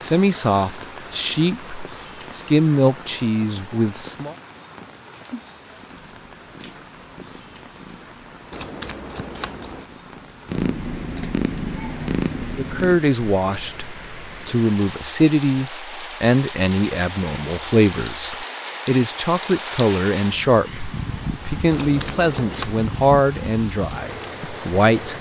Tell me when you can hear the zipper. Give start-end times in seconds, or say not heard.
not heard.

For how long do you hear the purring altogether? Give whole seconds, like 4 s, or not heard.
7 s.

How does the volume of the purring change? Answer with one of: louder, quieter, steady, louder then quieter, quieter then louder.
louder.